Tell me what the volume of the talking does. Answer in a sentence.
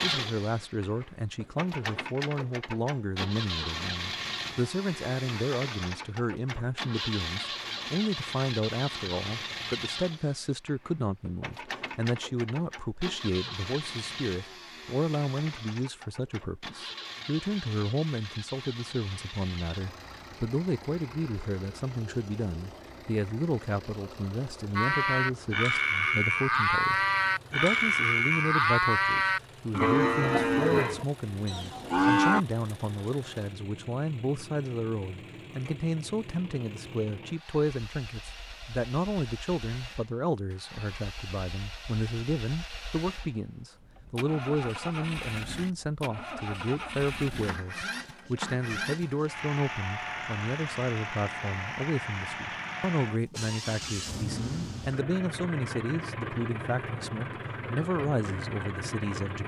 The loudness of the talking stays about the same.